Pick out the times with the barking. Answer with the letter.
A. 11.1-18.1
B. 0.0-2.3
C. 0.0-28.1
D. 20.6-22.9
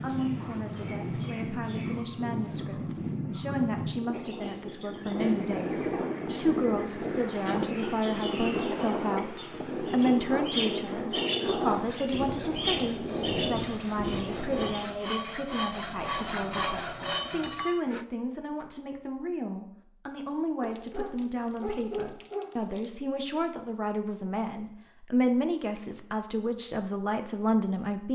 D.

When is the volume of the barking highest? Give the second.
22 s.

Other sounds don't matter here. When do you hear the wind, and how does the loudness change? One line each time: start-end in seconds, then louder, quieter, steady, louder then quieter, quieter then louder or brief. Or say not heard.
0.0-14.9 steady.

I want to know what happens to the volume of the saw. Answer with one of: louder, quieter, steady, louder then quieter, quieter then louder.
louder.